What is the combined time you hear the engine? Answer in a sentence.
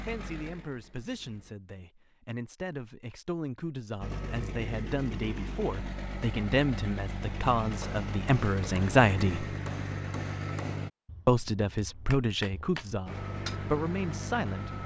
The engine can be heard for 10 seconds in total.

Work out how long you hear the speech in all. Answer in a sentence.
You can hear the speech for 13 seconds altogether.